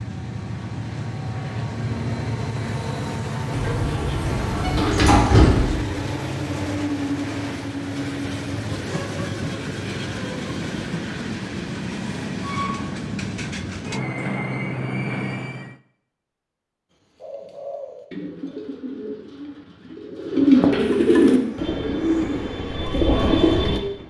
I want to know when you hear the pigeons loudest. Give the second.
21 s.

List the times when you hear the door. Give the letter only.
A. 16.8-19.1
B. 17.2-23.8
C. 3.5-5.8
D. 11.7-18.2
C.